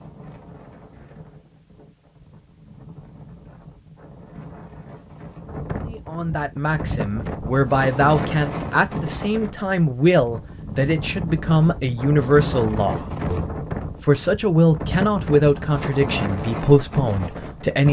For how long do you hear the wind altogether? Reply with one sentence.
You can hear the wind for 18 seconds altogether.